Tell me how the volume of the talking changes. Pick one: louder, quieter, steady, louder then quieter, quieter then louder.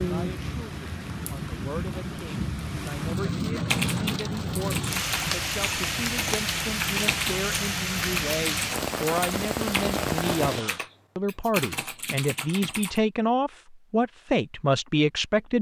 louder.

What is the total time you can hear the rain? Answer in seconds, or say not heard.
11 s.